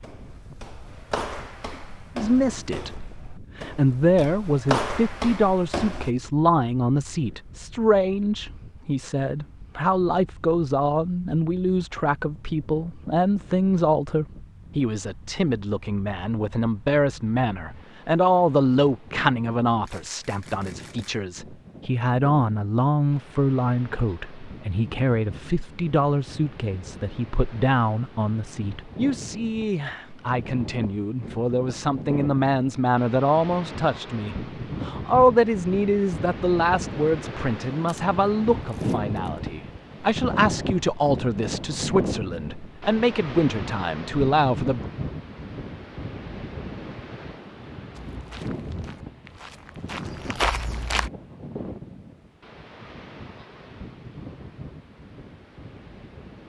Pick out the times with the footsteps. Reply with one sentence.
The footsteps can be heard from 0.0 to 6.1 s and from 48.0 to 51.1 s.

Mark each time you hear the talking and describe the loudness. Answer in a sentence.
The talking can be heard from 2.1 to 44.9 s, at a steady volume.